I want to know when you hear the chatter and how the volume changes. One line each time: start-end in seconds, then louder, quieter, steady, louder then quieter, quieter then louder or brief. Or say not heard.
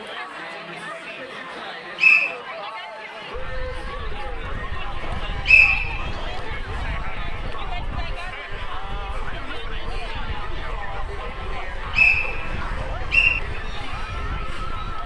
0.0-15.0 steady.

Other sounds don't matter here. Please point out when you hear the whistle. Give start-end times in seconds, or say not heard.
1.9-2.4, 5.5-6.2, 11.9-13.4.